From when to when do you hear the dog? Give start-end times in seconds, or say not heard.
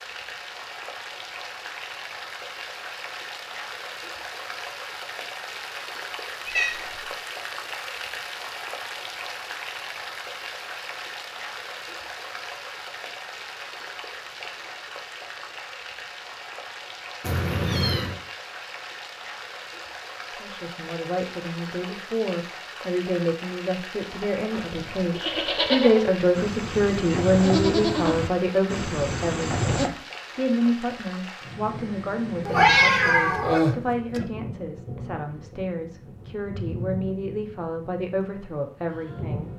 not heard.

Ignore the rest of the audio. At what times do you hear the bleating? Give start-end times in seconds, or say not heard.
24.2-29.9.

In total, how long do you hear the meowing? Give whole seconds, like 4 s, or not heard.
3 s.